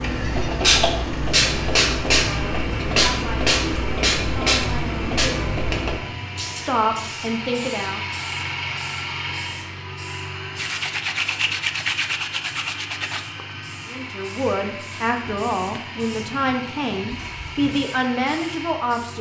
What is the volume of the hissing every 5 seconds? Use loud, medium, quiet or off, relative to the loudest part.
loud, medium, quiet, quiet.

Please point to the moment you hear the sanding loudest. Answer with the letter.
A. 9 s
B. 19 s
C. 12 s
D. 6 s
C.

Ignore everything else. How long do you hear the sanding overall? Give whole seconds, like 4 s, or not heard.
3 s.